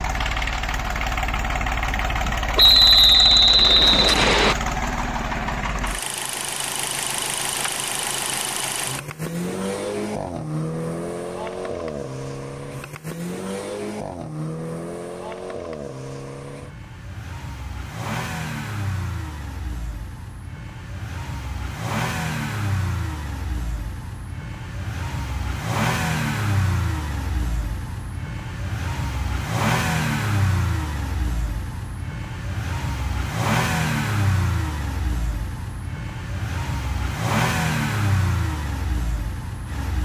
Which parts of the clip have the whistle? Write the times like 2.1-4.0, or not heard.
2.5-4.5.